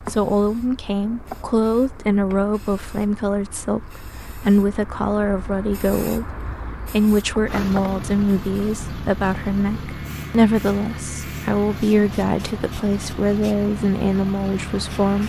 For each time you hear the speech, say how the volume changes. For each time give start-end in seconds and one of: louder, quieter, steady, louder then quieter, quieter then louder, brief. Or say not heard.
0.0-15.2 steady.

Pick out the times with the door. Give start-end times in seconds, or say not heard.
not heard.